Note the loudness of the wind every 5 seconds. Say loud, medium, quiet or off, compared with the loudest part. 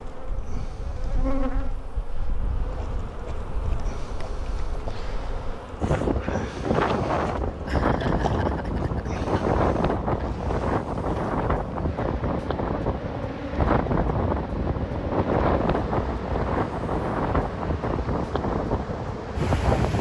quiet, loud, loud, loud.